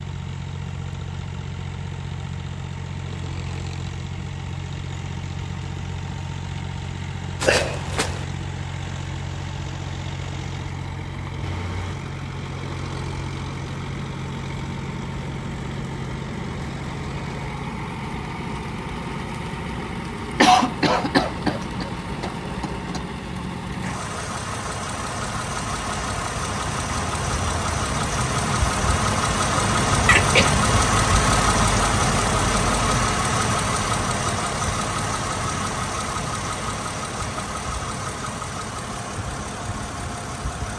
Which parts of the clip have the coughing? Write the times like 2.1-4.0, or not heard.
7.4-8.2, 20.4-23.0, 30.1-30.6.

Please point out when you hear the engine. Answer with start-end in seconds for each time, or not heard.
0.0-40.7.